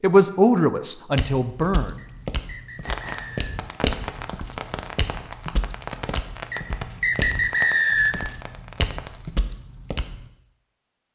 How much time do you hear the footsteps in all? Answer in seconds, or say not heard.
9 s.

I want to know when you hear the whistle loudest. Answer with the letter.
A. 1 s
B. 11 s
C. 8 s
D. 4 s
C.